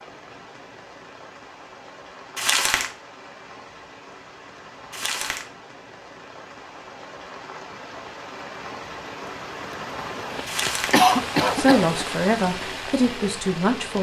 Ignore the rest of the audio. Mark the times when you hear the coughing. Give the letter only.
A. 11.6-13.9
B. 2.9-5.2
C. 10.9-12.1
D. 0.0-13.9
C.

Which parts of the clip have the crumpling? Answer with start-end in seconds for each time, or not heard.
2.4-2.9, 4.9-5.5, 10.4-11.0.